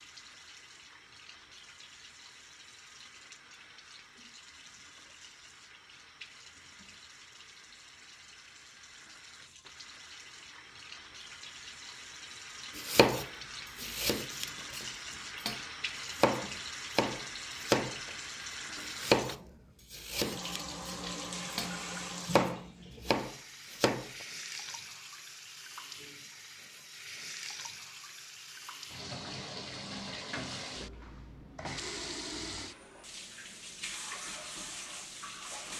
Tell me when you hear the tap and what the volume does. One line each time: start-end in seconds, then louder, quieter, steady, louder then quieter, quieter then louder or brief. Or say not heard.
0.0-35.7 louder.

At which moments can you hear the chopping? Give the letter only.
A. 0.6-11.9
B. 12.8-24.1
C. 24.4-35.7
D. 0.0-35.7
B.